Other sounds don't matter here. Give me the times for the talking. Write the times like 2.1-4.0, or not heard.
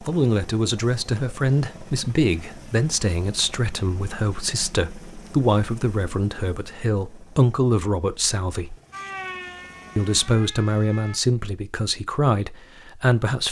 0.0-8.8, 9.9-13.4.